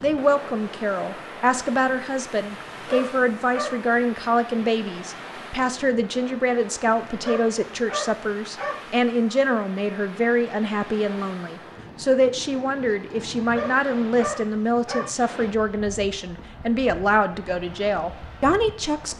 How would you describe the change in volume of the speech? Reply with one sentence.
The loudness of the speech stays about the same.